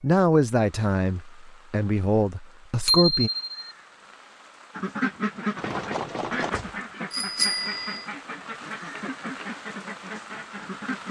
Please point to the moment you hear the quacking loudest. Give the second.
5 s.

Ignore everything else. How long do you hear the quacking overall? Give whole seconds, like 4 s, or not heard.
6 s.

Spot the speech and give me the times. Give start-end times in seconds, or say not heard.
0.0-3.3.